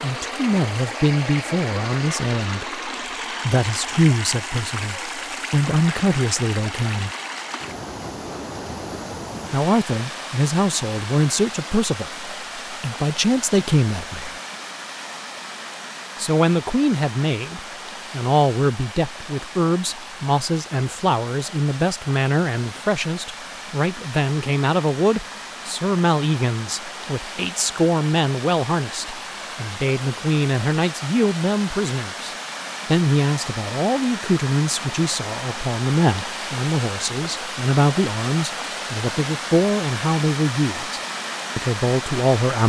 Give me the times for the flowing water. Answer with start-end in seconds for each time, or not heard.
0.0-42.6.